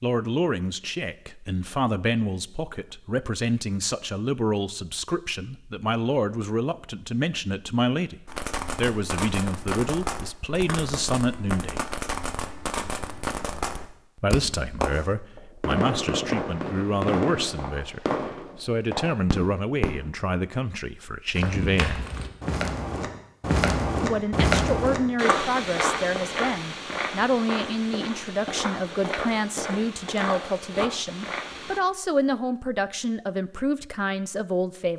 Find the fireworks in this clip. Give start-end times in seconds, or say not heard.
8.2-20.1.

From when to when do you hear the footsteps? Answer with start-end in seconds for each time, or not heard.
21.3-31.8.